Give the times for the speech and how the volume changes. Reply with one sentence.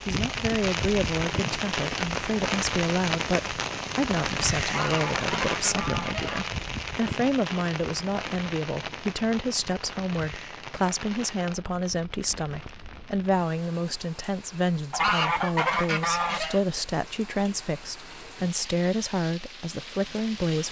You can hear the speech from 0.1 to 20.6 s, at a steady volume.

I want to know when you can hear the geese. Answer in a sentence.
You can hear the geese from 4.7 to 6.5 s and from 14.9 to 16.6 s.